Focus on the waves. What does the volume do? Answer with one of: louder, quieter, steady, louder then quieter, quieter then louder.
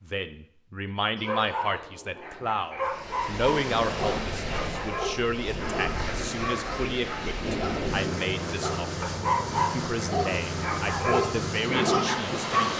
steady.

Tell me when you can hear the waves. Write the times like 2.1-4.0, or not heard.
2.8-12.7.